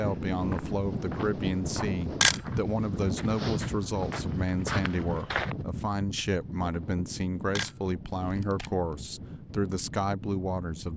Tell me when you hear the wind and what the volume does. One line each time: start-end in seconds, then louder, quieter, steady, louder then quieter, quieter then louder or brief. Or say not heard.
0.0-10.9 quieter.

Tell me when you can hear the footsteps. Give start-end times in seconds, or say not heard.
0.0-5.5.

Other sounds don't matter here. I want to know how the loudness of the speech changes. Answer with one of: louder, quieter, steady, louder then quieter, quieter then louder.
steady.